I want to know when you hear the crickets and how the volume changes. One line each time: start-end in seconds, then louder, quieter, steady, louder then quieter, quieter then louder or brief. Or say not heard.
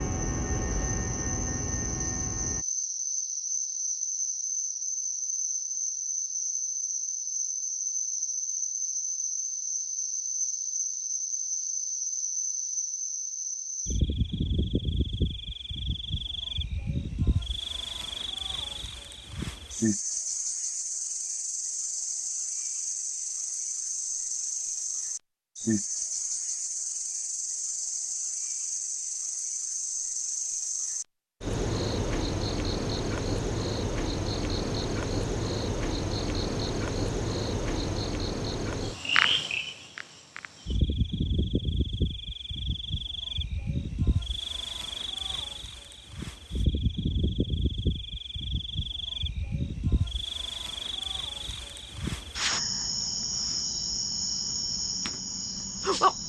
0.0-56.2 steady.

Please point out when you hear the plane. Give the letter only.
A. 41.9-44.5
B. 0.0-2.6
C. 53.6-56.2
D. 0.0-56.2
B.